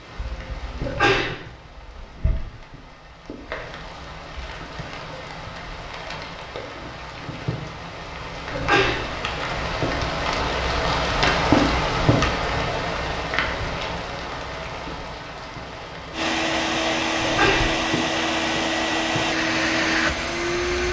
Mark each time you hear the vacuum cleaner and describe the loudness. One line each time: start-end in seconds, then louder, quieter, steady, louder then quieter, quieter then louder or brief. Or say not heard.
16.1-20.8 steady.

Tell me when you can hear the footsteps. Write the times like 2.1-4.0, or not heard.
not heard.